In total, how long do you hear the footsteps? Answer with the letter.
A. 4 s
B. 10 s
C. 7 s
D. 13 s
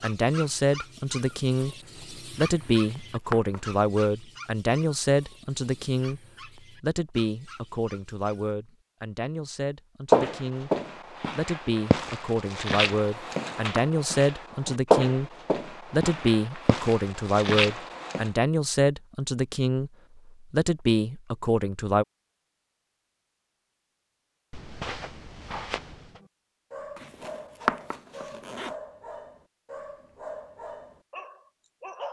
B.